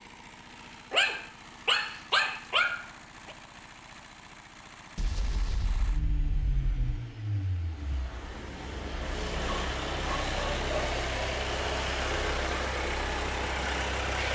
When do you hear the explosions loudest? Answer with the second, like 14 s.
5 s.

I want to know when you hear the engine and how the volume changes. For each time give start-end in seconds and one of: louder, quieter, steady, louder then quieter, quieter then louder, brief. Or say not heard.
0.0-14.3 louder.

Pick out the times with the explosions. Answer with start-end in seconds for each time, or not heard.
5.0-7.0.